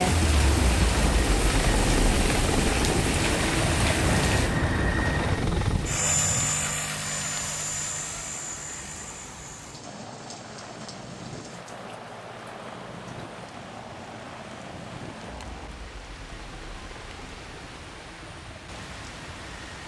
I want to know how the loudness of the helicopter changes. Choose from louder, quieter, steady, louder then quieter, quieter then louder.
quieter.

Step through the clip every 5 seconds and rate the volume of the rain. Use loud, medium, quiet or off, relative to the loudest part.
loud, quiet, quiet, quiet.